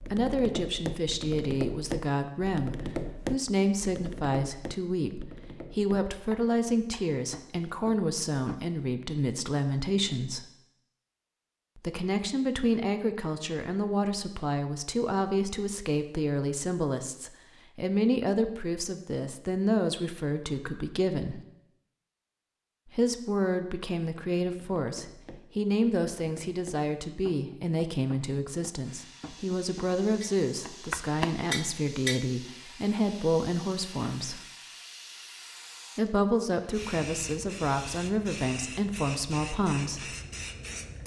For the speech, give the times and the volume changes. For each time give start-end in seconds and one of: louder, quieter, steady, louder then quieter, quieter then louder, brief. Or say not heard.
0.1-10.5 steady
11.8-21.4 steady
22.9-34.5 steady
36.0-40.1 steady.